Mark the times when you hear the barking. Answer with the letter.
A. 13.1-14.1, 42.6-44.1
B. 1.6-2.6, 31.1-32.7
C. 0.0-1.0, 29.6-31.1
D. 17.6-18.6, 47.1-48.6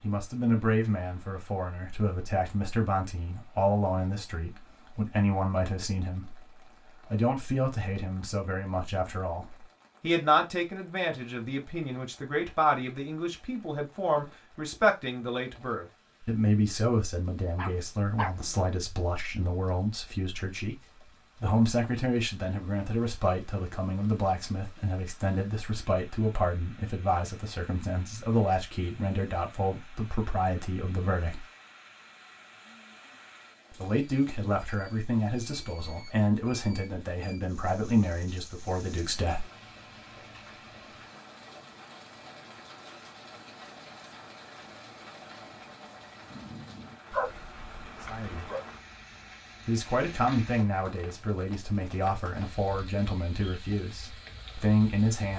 D.